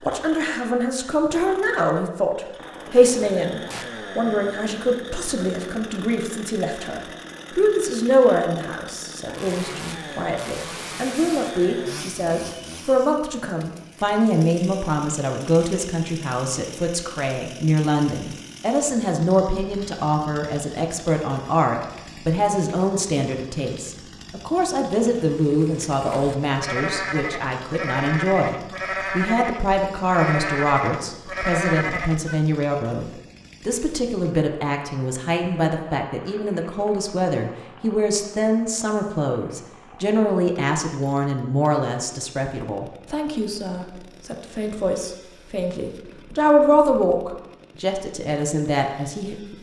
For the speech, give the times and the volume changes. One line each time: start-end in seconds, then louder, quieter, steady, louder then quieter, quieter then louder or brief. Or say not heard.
0.0-49.5 steady.